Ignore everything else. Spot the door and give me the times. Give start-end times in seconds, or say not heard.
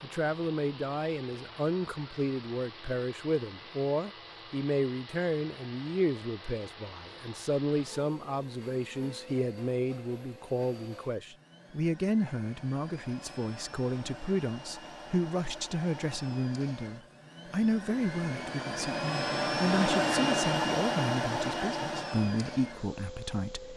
not heard.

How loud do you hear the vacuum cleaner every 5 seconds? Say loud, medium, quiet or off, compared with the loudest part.
quiet, quiet, quiet, loud, loud.